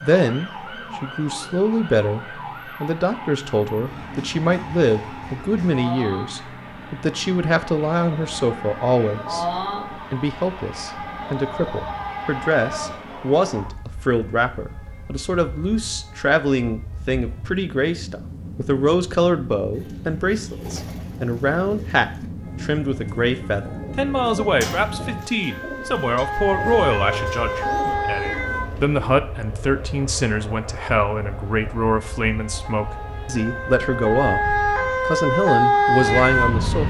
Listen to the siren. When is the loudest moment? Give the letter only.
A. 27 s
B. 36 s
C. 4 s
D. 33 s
B.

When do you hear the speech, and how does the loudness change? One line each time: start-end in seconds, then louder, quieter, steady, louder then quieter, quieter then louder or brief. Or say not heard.
0.0-36.8 steady.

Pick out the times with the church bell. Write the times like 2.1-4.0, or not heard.
not heard.